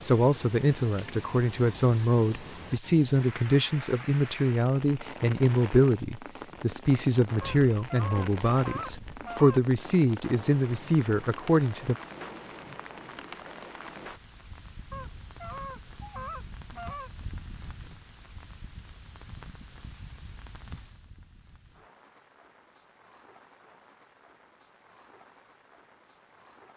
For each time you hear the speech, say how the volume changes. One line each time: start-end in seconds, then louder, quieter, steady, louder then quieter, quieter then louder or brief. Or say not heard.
0.0-11.9 steady.